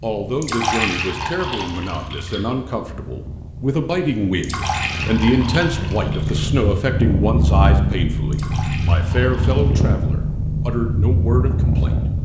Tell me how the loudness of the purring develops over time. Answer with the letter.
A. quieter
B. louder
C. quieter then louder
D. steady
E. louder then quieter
B.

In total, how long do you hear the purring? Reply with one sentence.
You can hear the purring for 12 seconds altogether.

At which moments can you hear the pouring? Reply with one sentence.
You can hear the pouring from 0.4 to 2.4 s, from 4.4 to 6.4 s and from 8.3 to 9.9 s.